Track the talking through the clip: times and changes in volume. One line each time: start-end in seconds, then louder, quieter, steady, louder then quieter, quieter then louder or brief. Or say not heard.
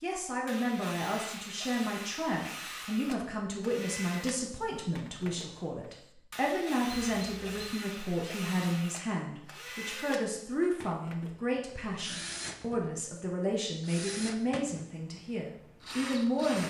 0.0-16.6 steady.